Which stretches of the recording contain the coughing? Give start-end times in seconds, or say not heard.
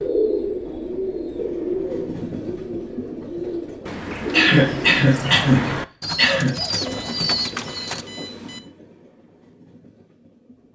4.3-6.5.